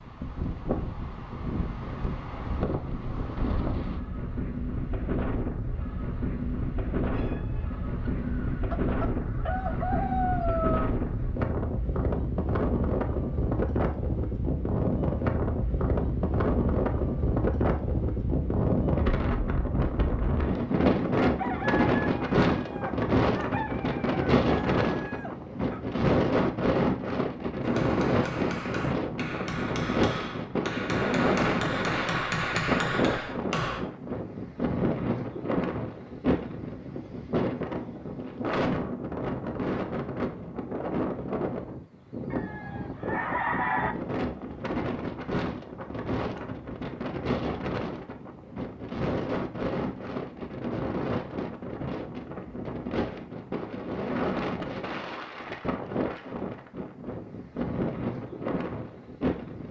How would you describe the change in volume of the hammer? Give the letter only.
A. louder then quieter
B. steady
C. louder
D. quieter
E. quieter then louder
C.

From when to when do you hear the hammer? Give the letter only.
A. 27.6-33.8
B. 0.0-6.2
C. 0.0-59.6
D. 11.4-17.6
A.